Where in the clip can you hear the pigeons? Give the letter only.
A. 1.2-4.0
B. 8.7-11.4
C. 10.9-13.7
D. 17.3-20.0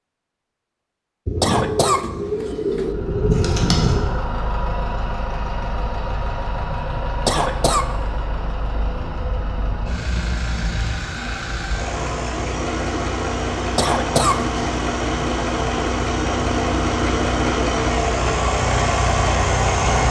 A.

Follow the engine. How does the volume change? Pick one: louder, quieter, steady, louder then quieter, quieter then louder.
louder.